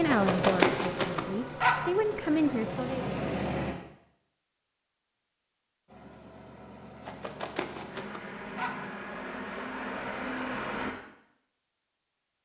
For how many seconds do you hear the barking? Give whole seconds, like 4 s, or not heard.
4 s.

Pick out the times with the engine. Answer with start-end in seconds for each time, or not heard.
0.0-3.8, 5.8-10.9.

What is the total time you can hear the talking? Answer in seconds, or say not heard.
3 s.